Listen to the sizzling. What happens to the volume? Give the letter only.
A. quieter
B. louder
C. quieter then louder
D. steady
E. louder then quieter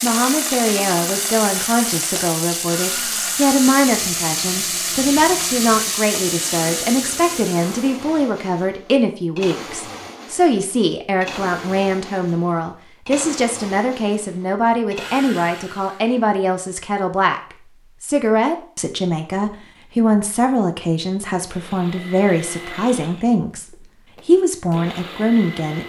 D.